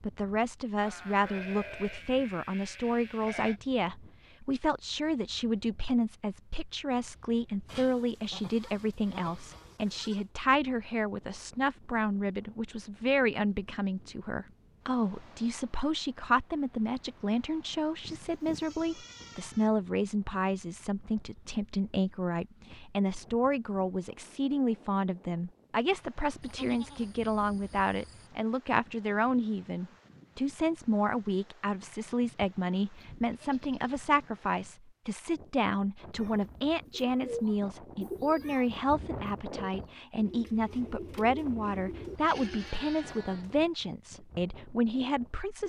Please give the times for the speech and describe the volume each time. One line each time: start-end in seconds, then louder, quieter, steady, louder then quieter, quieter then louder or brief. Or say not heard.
0.0-45.6 steady.